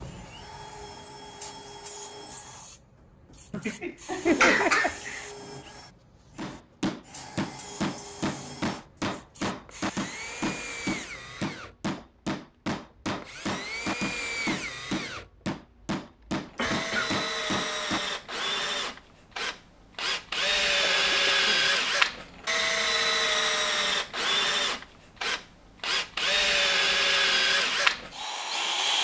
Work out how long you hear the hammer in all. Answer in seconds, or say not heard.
12 s.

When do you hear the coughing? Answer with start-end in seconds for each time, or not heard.
3.5-5.2, 16.6-17.1, 21.1-21.7.